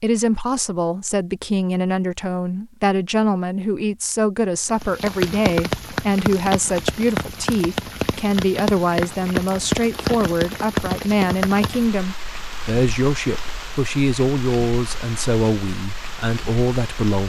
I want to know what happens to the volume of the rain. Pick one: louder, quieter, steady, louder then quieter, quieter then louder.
quieter.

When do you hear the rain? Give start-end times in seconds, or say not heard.
4.7-17.2.